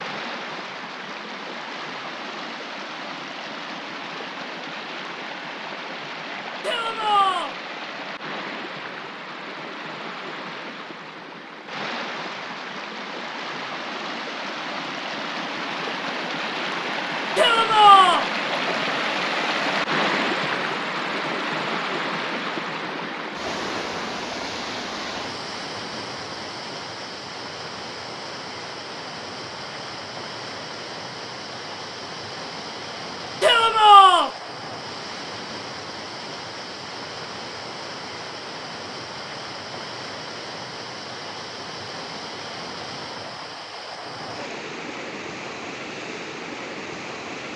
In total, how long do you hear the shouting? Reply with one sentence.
The shouting can be heard for 3 seconds in total.